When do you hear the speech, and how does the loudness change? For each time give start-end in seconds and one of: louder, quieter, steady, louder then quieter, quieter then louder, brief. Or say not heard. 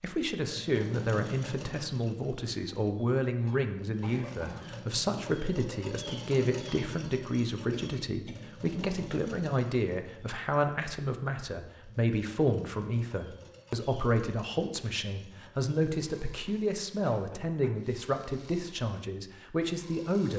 0.0-20.3 steady.